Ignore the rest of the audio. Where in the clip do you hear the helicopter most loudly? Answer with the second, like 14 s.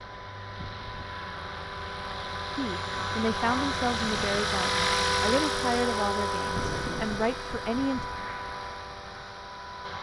5 s.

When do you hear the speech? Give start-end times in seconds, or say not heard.
2.5-8.1.